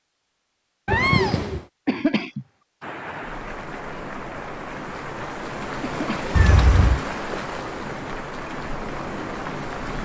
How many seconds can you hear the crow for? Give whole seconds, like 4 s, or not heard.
not heard.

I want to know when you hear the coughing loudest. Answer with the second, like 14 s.
2 s.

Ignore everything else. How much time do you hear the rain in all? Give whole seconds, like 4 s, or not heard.
7 s.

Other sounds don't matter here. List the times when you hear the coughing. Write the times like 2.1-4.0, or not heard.
1.9-2.5, 5.8-6.3.